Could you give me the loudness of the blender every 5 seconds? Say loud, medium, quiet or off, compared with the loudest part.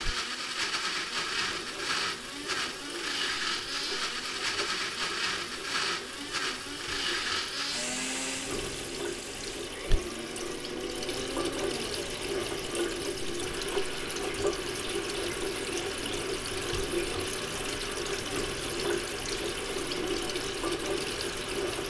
loud, loud, medium, medium, medium.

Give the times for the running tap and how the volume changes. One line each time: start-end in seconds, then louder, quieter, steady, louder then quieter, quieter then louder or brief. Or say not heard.
0.0-21.8 louder.